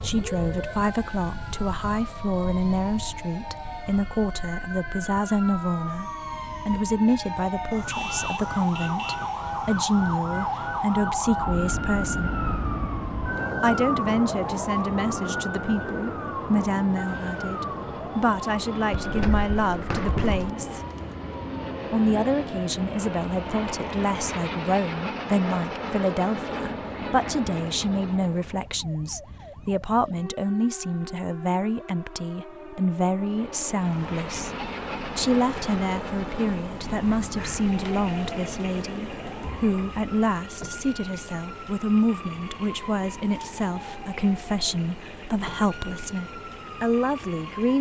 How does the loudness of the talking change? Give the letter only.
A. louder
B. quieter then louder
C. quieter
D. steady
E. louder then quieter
D.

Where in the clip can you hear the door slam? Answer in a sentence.
You can hear the door slam from 18.9 to 20.5 s.